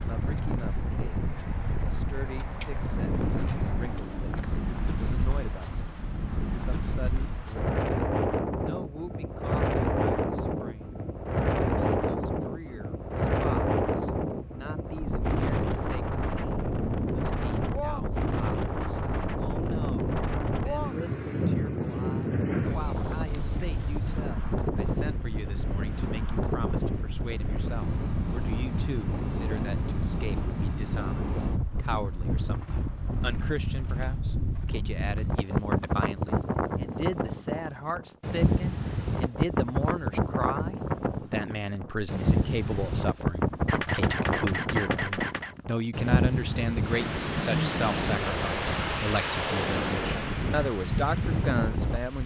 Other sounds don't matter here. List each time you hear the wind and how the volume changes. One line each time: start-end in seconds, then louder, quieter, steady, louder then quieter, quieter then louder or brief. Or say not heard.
0.0-52.2 steady.